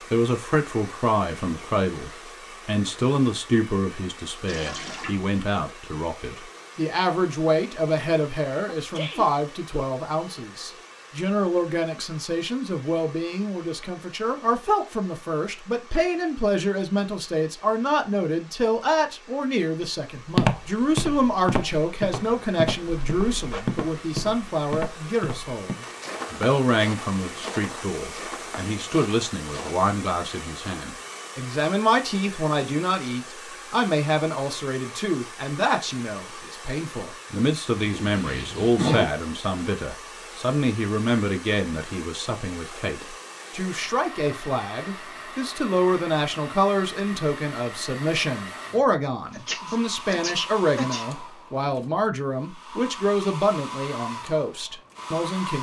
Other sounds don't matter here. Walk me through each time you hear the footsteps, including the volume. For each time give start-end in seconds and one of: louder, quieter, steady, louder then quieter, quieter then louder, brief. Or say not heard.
20.2-29.9 quieter.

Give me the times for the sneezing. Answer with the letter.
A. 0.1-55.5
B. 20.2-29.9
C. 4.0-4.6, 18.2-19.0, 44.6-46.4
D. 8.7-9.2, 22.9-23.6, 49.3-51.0
D.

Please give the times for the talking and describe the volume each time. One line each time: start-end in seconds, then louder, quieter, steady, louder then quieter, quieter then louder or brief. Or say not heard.
0.1-55.5 steady.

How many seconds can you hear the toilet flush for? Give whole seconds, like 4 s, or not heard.
2 s.